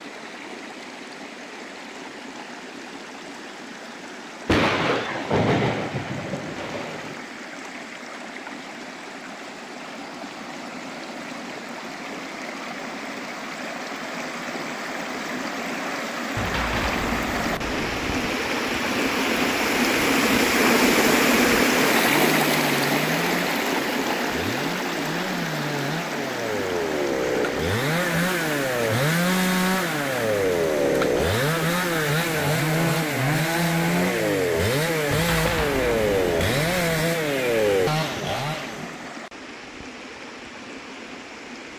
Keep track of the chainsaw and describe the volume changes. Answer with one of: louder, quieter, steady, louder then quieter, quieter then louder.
louder.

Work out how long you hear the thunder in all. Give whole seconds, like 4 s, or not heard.
7 s.